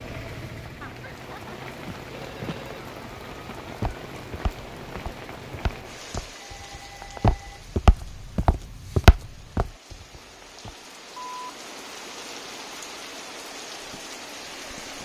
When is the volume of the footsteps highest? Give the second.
9 s.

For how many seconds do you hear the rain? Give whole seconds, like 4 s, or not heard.
15 s.